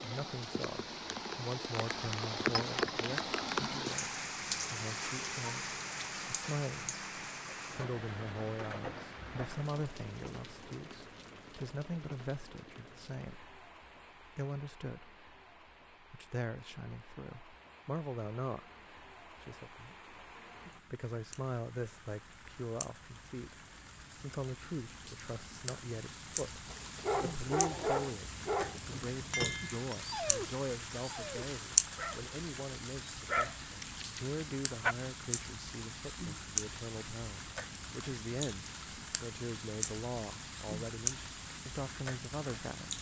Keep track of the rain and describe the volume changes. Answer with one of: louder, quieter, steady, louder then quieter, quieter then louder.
quieter then louder.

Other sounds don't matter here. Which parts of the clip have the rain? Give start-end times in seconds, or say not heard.
0.0-42.9.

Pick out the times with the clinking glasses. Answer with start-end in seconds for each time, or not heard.
2.5-3.0, 29.3-29.8.